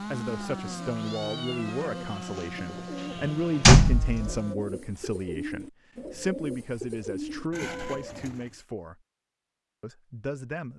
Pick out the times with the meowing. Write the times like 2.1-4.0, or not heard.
0.8-2.0, 7.5-8.2.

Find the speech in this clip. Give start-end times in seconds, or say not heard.
0.0-9.0, 9.8-10.7.